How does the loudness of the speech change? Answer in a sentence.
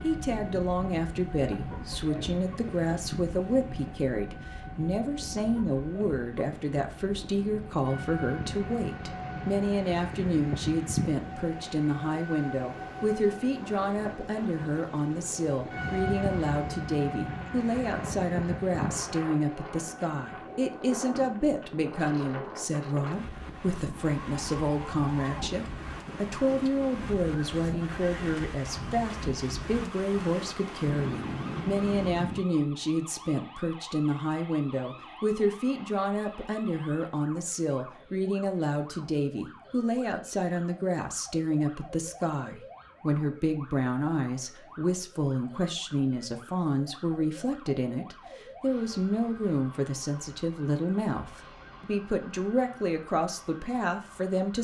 The loudness of the speech stays about the same.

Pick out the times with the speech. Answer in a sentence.
The speech can be heard from 0.0 to 54.6 s.